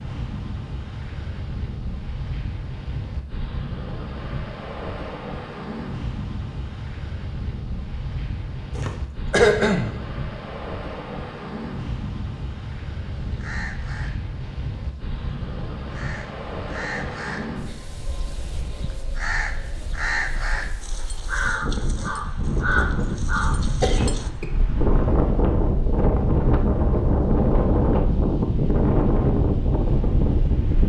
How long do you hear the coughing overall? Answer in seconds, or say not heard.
2 s.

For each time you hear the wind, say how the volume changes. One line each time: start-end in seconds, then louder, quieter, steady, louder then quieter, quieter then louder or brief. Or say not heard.
0.0-30.8 louder.